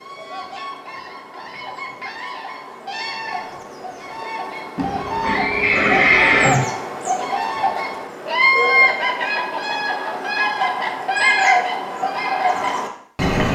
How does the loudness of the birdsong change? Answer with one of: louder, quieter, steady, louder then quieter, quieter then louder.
louder.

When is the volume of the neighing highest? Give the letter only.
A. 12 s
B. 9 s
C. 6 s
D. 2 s
C.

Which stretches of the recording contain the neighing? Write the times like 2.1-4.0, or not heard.
4.8-6.7.